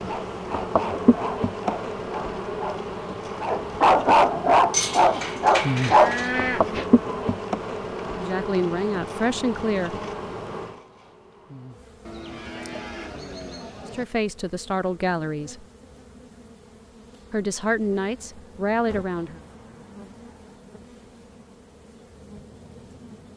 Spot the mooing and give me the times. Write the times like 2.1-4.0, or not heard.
4.7-6.8, 12.1-14.1.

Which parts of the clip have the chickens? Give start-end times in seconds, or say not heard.
not heard.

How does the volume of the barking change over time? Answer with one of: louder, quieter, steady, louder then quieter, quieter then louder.
louder.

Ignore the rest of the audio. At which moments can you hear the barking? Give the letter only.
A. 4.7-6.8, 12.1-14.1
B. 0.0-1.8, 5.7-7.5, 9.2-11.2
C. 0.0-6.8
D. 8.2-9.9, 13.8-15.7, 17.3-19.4
C.